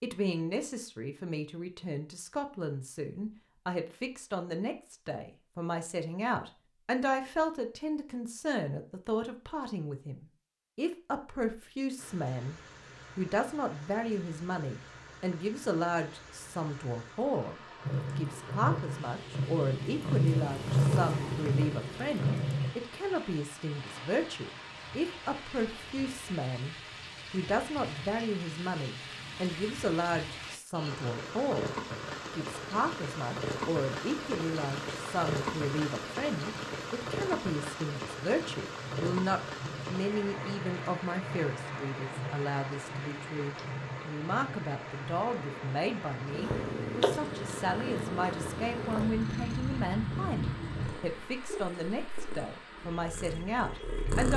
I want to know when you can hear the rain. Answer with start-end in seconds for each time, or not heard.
11.9-54.3.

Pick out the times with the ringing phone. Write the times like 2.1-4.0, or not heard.
not heard.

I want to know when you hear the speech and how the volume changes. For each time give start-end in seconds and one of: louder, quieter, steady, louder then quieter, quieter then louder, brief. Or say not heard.
0.0-54.3 steady.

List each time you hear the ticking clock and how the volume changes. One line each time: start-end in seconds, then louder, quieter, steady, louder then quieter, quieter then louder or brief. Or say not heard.
not heard.